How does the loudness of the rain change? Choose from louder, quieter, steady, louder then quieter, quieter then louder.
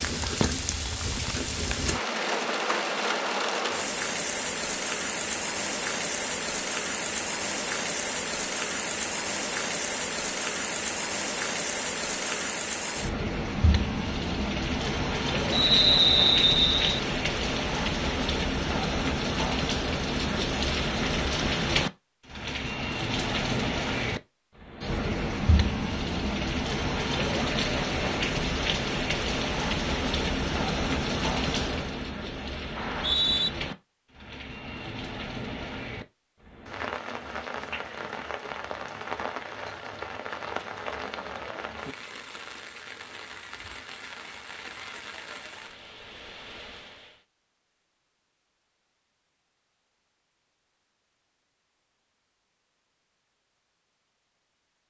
quieter.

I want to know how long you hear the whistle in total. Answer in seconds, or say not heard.
2 s.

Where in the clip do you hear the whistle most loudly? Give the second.
16 s.